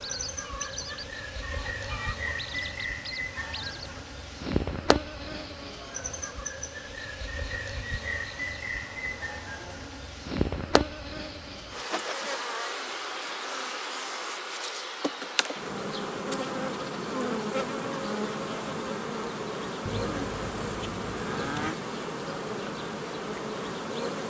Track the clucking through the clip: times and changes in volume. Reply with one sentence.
The clucking can be heard from 0.0 to 4.2 s, getting quieter then louder.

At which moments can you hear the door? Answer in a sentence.
The door can't be heard in this clip.